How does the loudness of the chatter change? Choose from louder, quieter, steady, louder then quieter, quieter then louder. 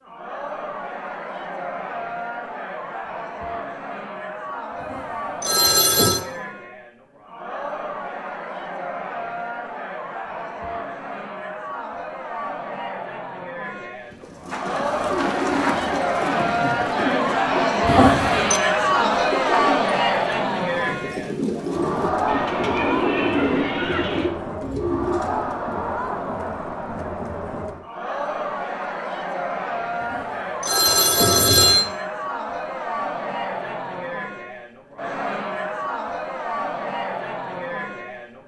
louder then quieter.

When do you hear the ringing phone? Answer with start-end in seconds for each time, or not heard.
4.8-6.2, 17.9-18.6, 30.1-31.9.